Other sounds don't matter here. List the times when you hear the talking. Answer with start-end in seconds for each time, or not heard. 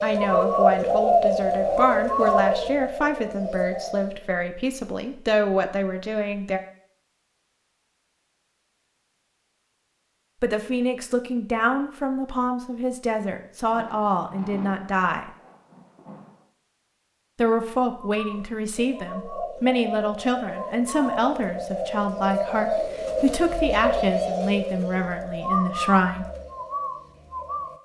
0.0-6.6, 10.4-15.3, 17.4-26.2.